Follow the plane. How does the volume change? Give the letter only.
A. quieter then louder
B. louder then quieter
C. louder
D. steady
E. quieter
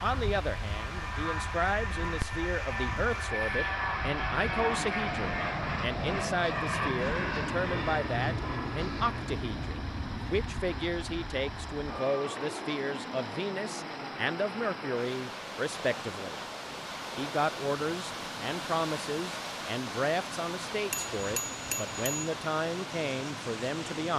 E.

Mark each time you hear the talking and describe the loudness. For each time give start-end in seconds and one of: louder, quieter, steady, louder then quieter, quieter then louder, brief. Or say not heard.
0.0-24.1 steady.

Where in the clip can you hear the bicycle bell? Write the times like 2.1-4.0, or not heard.
20.9-22.3.